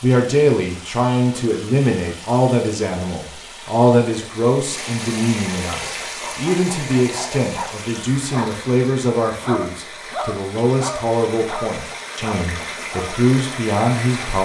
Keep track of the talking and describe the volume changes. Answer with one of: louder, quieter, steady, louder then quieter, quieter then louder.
steady.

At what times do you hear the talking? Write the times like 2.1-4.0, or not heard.
0.0-14.4.